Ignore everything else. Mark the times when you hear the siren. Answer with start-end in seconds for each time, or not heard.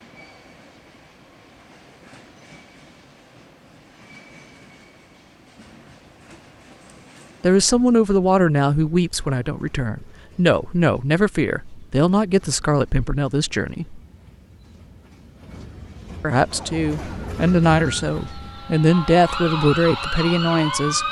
16.5-21.0.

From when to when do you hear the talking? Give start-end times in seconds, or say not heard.
7.4-14.0, 16.2-21.0.